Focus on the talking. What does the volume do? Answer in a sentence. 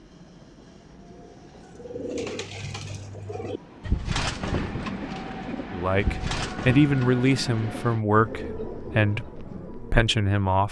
The volume of the talking goes down.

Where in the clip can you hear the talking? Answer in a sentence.
The talking can be heard from 5.7 to 10.6 s.